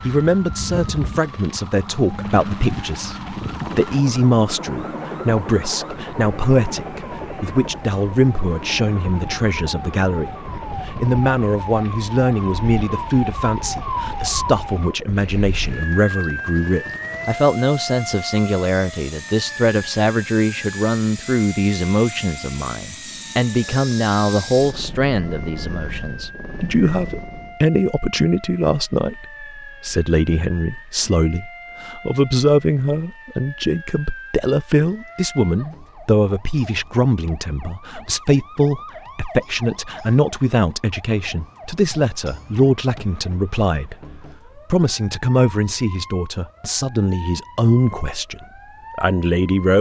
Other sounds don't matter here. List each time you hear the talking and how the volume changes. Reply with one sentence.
You can hear the talking from 0.1 to 49.7 s, at a steady volume.